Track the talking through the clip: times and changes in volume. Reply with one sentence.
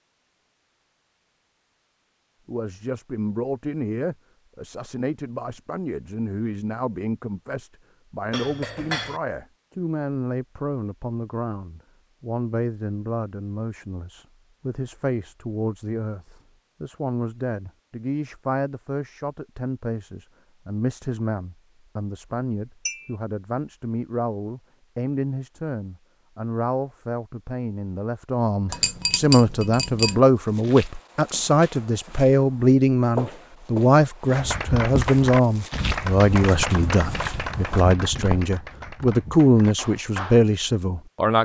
You can hear the talking from 2.5 to 41.4 s, getting louder.